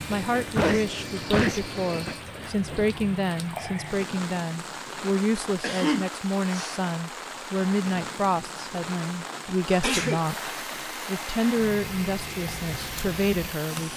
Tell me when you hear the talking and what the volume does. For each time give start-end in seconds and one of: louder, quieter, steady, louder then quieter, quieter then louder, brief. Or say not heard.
0.1-13.9 steady.